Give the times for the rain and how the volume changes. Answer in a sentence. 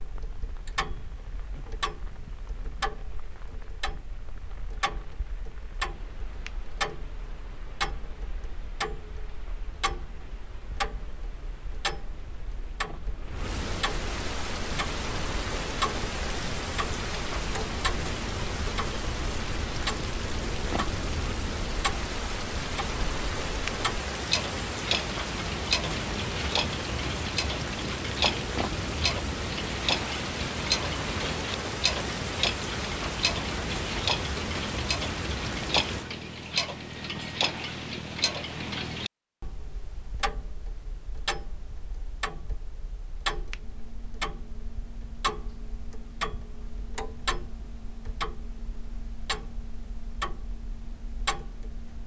The rain can be heard from 0.0 to 36.1 s, getting louder.